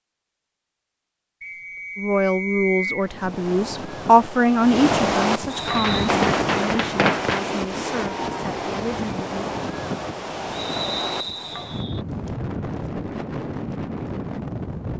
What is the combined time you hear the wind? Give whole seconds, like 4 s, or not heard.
12 s.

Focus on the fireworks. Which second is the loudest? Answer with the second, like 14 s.
7 s.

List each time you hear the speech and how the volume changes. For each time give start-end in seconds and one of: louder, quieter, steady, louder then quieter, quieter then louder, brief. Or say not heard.
1.9-9.4 louder then quieter.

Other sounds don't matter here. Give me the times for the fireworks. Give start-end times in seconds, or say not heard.
5.5-7.5.